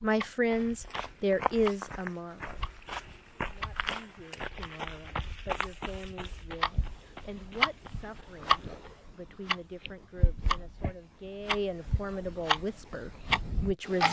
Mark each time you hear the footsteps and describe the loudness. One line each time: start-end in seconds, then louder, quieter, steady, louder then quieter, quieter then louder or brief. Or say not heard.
0.5-9.0 quieter.